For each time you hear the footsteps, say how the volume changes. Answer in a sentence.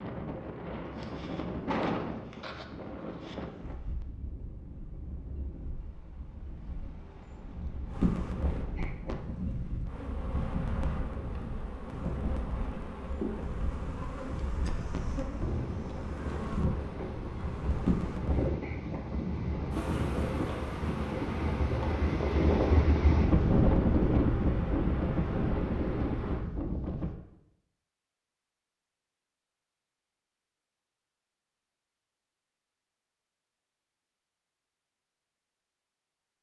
You can't hear the footsteps here.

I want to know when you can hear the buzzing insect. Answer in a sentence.
The buzzing insect can be heard from 7.9 to 26.4 s.